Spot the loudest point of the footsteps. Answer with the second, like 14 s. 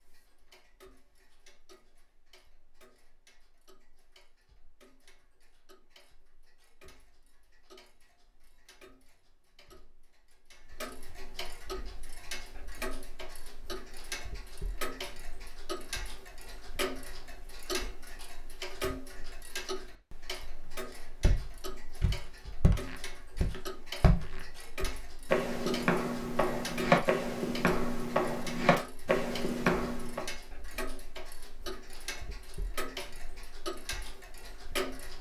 27 s.